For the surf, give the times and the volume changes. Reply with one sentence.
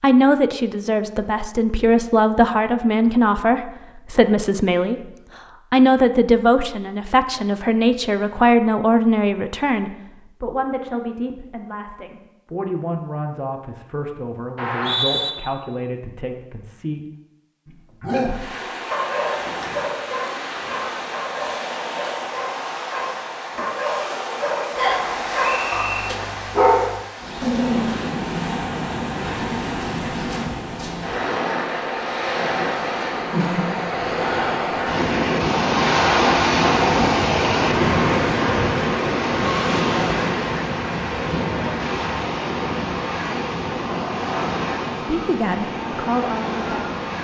You can hear the surf from 18.2 to 47.1 s, getting louder then quieter.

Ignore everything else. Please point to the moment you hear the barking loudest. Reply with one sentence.
The loudest moment of the barking is at 27 seconds.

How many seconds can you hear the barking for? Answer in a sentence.
The barking can be heard for 10 seconds in total.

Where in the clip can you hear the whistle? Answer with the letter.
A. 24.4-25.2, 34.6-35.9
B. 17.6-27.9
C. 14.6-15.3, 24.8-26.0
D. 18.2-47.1
C.